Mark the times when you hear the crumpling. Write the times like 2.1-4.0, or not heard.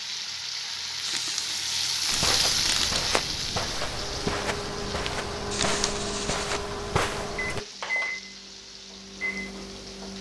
1.1-3.0, 5.5-6.6.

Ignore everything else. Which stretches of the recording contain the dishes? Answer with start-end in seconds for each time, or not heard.
not heard.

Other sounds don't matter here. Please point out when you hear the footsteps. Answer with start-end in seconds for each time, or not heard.
2.1-7.6.